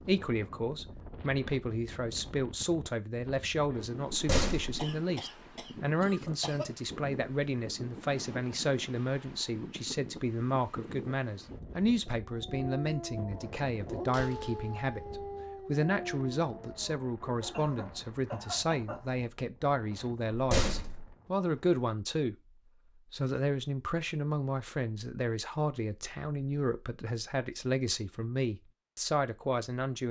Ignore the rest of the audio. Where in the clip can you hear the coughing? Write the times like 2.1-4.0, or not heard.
4.8-6.7, 17.5-19.1.